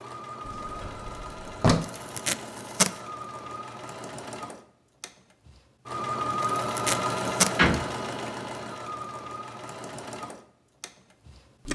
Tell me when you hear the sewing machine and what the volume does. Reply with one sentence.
You can hear the sewing machine from 0.0 to 11.7 s, getting louder then quieter.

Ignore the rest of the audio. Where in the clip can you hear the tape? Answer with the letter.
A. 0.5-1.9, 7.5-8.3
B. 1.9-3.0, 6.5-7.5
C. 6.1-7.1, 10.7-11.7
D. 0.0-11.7
B.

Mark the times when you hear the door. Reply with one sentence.
You can hear the door from 0.5 to 1.9 s and from 7.5 to 8.3 s.